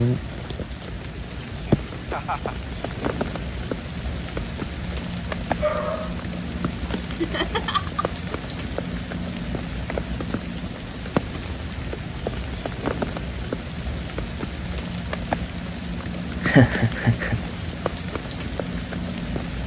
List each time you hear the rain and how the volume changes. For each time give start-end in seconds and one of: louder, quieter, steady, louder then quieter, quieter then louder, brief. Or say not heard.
0.0-19.6 steady.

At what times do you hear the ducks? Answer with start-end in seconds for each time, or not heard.
not heard.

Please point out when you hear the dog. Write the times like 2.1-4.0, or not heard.
5.6-6.2.